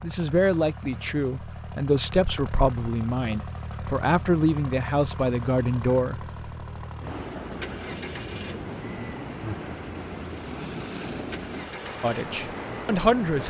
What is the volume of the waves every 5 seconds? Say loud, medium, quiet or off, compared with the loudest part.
off, loud, loud.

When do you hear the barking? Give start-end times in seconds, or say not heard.
not heard.